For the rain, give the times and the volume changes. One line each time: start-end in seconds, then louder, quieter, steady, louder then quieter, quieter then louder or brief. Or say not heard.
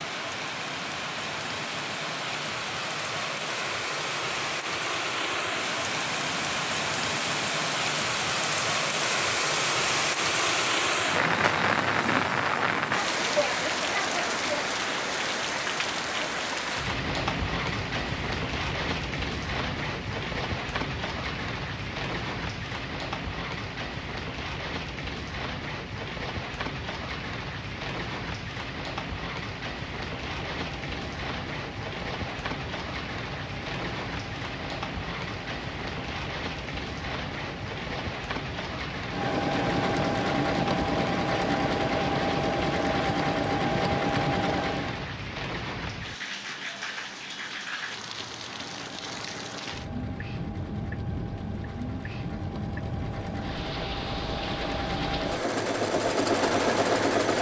0.0-57.3 quieter.